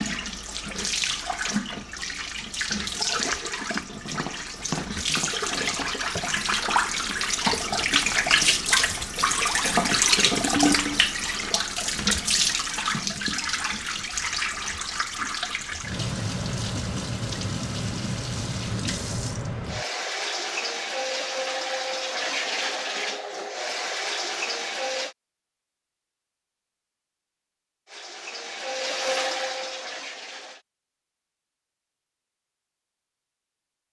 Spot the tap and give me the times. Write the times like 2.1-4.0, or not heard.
0.0-25.1, 27.9-30.6.